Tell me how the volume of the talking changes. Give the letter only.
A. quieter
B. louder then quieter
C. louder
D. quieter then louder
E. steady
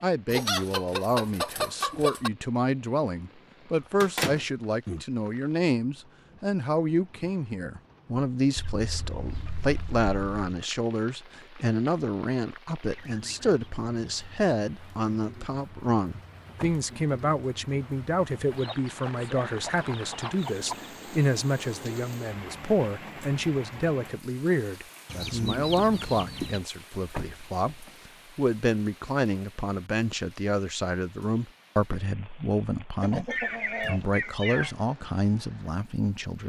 E.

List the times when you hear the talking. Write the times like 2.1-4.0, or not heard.
0.0-36.4.